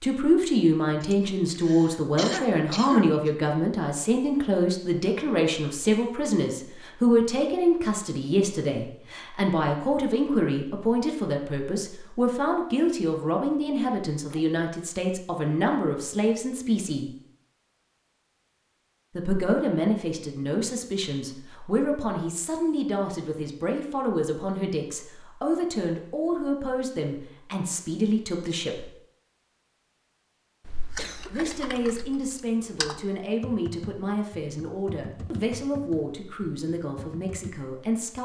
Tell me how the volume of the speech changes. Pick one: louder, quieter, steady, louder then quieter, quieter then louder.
quieter.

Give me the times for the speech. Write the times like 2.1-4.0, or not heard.
0.0-17.1, 19.1-28.9, 31.2-38.1.